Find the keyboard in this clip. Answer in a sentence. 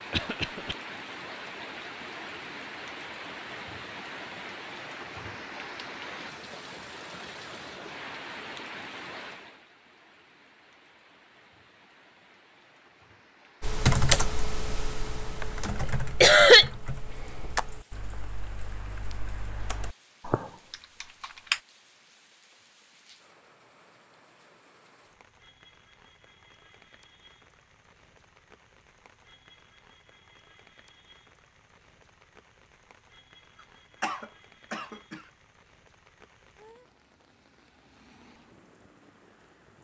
You can hear the keyboard from 13.6 to 21.6 s.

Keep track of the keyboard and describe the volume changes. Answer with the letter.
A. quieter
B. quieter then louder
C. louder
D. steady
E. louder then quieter
B.